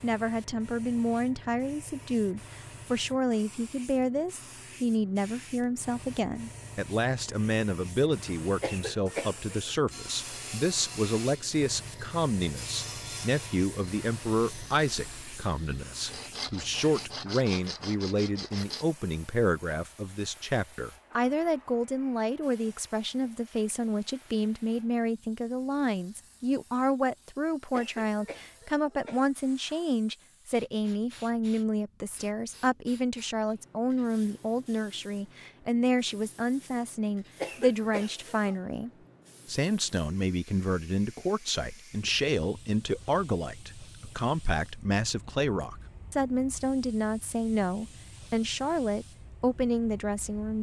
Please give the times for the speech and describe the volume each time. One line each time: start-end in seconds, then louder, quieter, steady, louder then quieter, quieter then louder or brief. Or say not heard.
0.0-50.5 steady.